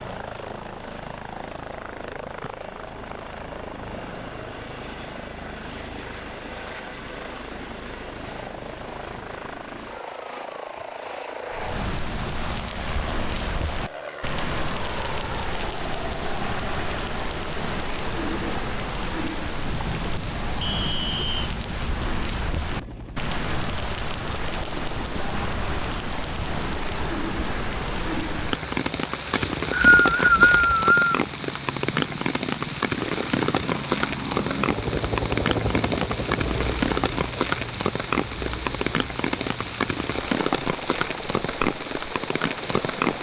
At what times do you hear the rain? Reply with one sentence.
You can hear the rain from 11.5 to 43.1 s.